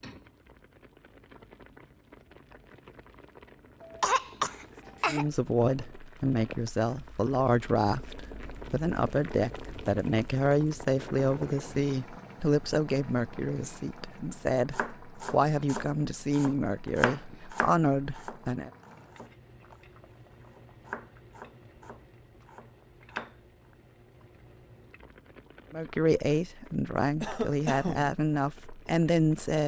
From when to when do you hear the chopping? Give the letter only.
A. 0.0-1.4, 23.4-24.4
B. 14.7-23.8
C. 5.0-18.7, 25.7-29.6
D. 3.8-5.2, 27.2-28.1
B.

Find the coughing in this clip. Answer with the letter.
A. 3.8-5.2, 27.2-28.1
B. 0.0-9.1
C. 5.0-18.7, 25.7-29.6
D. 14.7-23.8
A.